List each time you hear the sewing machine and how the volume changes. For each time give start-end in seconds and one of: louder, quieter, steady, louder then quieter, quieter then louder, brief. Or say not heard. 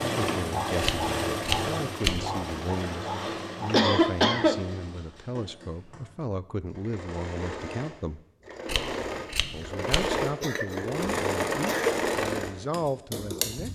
0.0-13.6 quieter then louder.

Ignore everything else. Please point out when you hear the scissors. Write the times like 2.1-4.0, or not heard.
0.8-2.5, 8.7-10.2.